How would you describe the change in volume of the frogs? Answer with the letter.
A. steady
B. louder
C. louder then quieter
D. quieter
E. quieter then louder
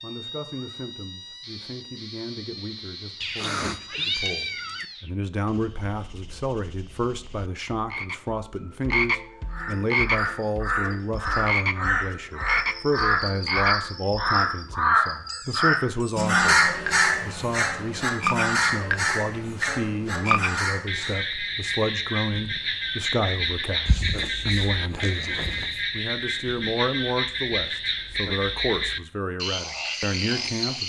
B.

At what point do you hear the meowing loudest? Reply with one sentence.
The volume of the meowing peaks at 4 seconds.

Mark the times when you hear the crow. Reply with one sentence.
You can hear the crow from 9.5 to 21.2 s.